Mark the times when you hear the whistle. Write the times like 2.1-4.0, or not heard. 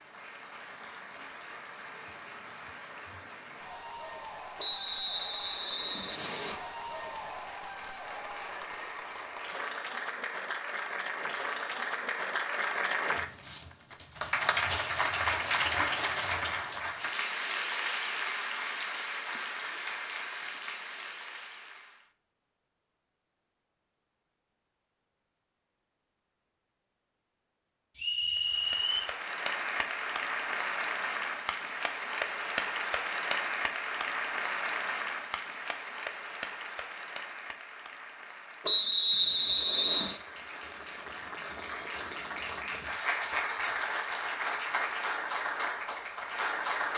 4.5-6.5, 27.9-29.1, 38.6-40.2.